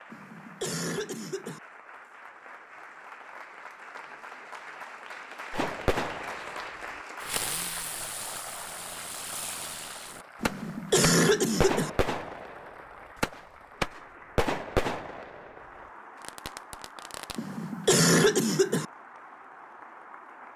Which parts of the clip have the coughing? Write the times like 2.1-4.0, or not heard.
0.1-1.6, 10.4-11.9, 17.4-18.9.